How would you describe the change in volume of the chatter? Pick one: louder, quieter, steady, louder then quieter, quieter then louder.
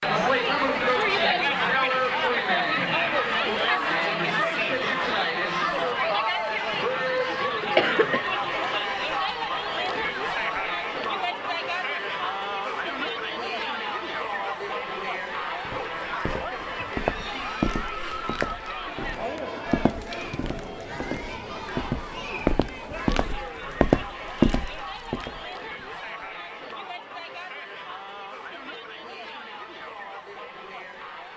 quieter.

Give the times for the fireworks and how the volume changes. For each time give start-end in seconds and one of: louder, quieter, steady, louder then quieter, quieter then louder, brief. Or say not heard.
not heard.